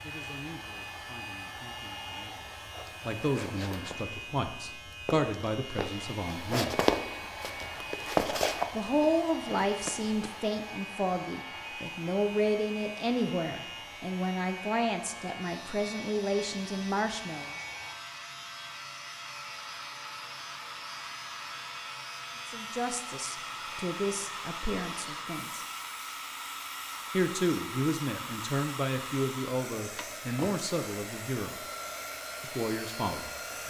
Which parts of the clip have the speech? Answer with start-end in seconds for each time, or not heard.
0.0-6.8, 8.8-17.5, 22.4-25.6, 27.1-31.6, 32.4-33.6.